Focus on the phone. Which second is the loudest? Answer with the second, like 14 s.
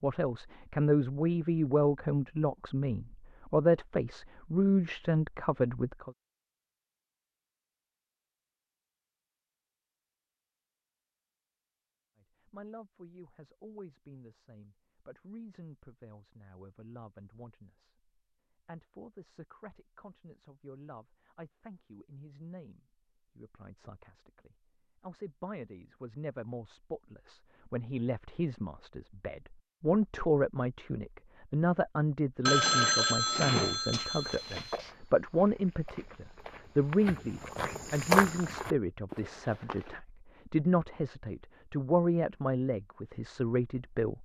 33 s.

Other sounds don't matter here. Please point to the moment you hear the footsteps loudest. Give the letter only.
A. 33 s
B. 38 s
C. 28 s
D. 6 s
B.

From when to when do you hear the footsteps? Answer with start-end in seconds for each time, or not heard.
34.1-40.0.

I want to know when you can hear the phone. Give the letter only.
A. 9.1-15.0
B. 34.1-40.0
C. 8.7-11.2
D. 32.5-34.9
D.